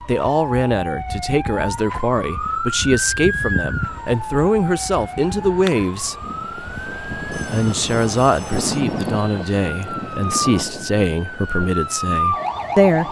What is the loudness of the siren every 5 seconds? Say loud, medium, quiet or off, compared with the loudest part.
loud, medium, loud.